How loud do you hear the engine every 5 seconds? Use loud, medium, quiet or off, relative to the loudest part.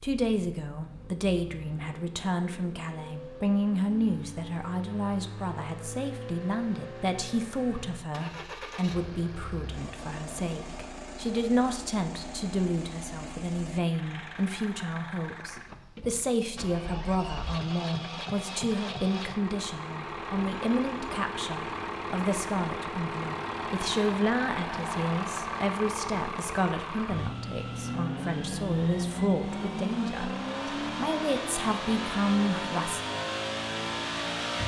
quiet, medium, medium, medium, loud, loud, loud.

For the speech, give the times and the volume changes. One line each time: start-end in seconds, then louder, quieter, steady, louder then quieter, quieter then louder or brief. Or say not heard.
0.0-33.0 steady.